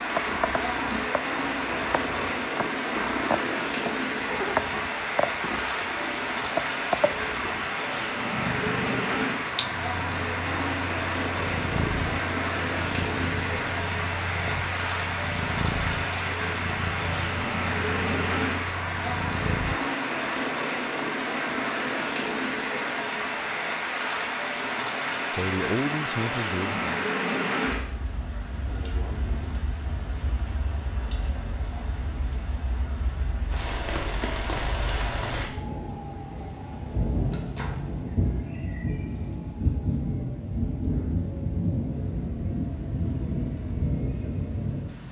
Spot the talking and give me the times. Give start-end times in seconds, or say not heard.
25.3-26.9.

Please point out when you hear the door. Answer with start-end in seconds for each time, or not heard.
14.3-14.8, 37.3-37.9.